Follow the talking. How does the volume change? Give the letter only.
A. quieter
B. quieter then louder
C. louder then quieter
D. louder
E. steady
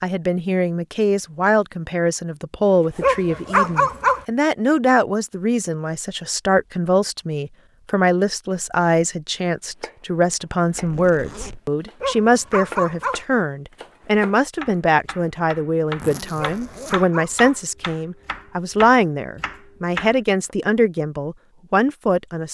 E.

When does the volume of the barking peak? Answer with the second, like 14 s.
4 s.